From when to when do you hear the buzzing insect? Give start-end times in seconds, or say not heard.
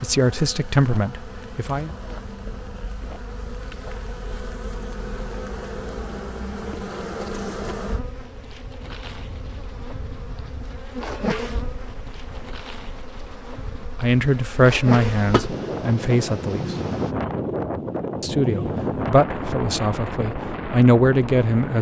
0.0-17.1.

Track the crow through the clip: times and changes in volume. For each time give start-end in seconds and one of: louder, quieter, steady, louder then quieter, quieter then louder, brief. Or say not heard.
not heard.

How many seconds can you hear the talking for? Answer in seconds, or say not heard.
8 s.